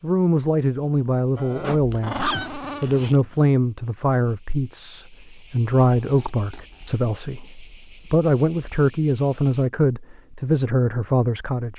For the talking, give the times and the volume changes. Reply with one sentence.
You can hear the talking from 0.0 to 11.7 s, at a steady volume.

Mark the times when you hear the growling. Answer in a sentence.
The growling can be heard from 1.4 to 2.9 s.